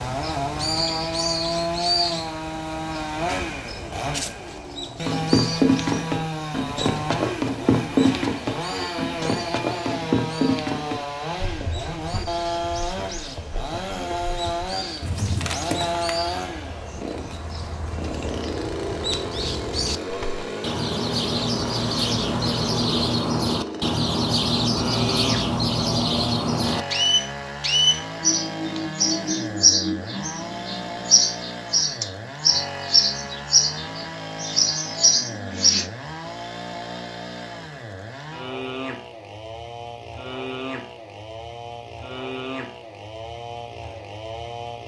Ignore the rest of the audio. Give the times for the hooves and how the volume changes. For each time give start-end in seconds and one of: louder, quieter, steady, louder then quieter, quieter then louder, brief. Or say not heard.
5.0-16.1 quieter then louder.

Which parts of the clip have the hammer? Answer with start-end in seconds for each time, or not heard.
not heard.